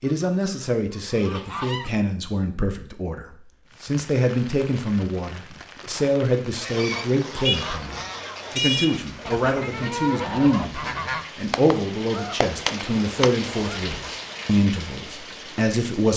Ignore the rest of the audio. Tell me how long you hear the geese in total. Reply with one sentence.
The geese can be heard for 9 seconds in total.